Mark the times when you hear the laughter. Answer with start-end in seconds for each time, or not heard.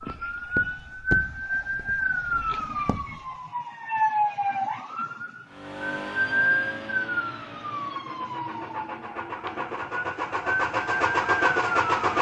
not heard.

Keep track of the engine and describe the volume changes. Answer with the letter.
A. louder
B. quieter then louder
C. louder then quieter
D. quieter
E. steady
B.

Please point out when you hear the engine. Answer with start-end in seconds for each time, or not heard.
5.5-12.1.